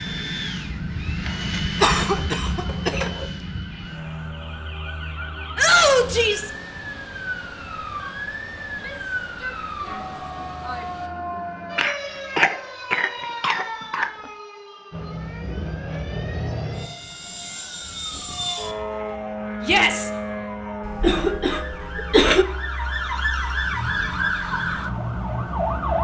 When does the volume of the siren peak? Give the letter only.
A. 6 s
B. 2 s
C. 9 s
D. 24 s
D.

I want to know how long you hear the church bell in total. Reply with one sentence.
The church bell can't be heard in this clip.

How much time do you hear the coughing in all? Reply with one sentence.
You can hear the coughing for 6 seconds altogether.